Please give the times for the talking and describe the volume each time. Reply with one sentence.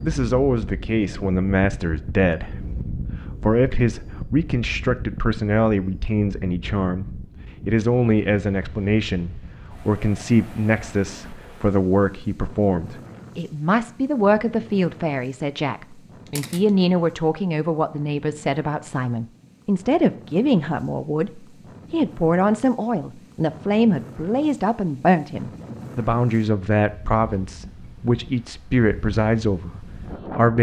The talking can be heard from 0.0 to 30.5 s, at a steady volume.